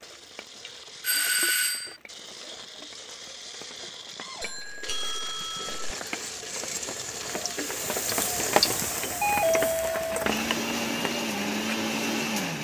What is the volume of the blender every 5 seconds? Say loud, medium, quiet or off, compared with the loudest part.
quiet, medium, loud.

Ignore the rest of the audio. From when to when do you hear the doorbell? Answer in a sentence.
You can hear the doorbell from 1.0 to 1.9 s, from 4.4 to 5.8 s and from 9.2 to 10.3 s.